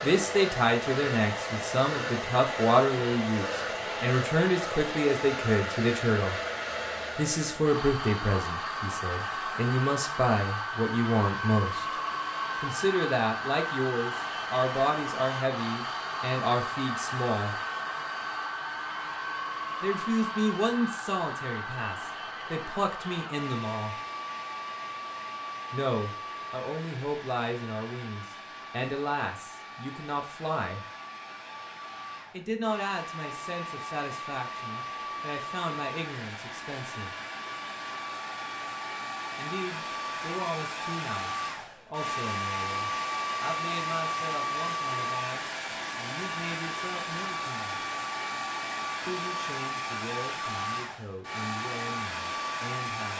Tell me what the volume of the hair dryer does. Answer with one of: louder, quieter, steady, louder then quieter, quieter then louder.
quieter then louder.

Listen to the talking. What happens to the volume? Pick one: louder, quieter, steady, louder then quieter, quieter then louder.
quieter.